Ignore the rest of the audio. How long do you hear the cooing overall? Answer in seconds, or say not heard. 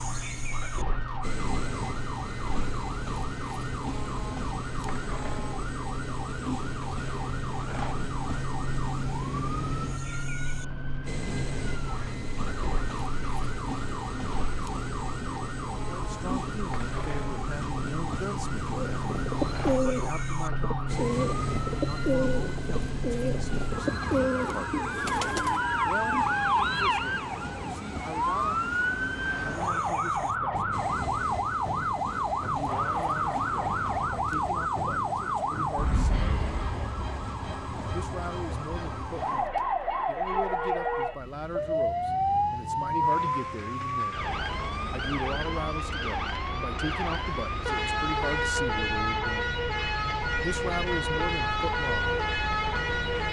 7 s.